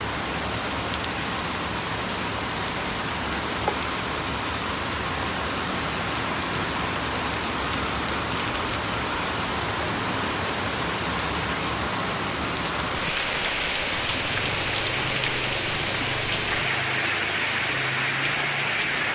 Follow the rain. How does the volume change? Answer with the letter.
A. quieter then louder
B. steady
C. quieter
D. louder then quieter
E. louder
B.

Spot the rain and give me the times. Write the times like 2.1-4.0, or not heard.
0.0-19.0.